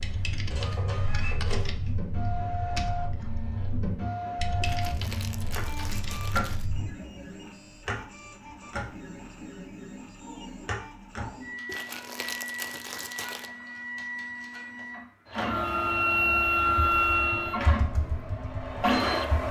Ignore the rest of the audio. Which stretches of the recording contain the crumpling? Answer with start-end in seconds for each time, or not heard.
4.6-6.7, 11.7-13.5.